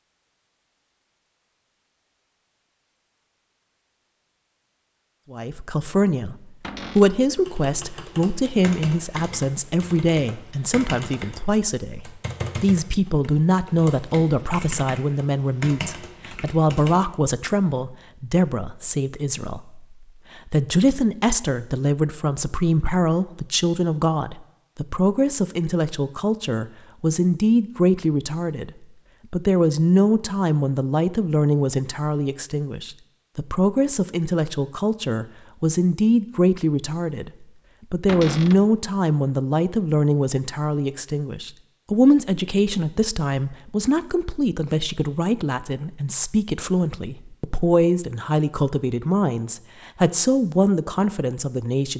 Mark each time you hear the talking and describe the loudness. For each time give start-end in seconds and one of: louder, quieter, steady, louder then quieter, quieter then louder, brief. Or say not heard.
5.3-51.9 steady.